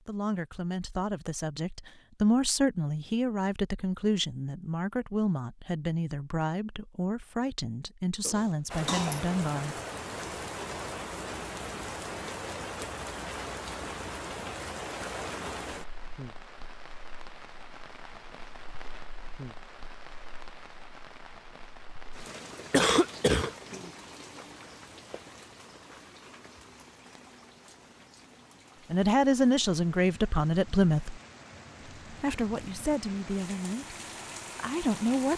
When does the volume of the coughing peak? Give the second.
23 s.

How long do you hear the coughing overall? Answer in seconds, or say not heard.
2 s.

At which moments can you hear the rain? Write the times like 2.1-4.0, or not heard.
8.7-35.3.